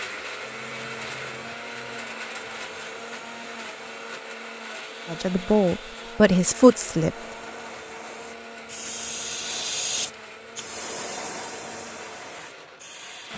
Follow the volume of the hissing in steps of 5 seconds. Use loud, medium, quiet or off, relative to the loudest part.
quiet, loud, loud.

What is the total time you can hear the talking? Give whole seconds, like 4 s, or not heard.
2 s.